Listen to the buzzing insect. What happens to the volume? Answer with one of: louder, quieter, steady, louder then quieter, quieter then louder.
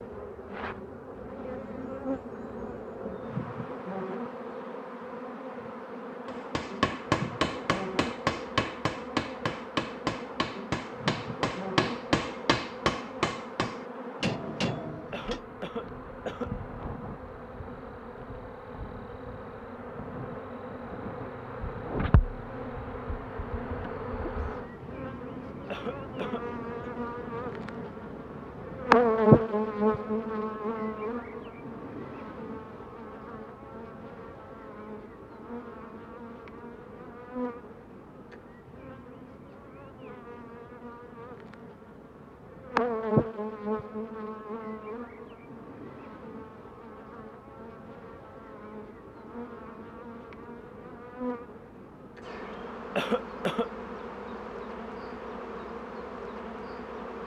louder then quieter.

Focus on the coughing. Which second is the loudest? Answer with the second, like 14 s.
53 s.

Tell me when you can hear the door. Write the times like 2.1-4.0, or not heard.
not heard.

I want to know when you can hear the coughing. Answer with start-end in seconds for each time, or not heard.
15.1-16.5, 25.7-26.9, 53.0-53.7.